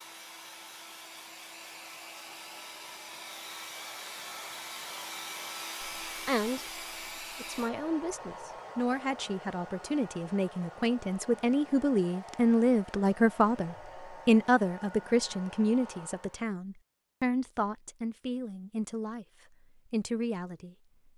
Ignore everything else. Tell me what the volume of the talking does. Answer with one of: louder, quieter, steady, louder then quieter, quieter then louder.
louder then quieter.